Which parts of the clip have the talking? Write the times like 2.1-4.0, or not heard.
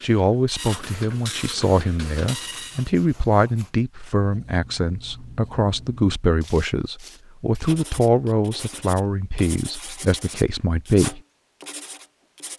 0.0-11.2.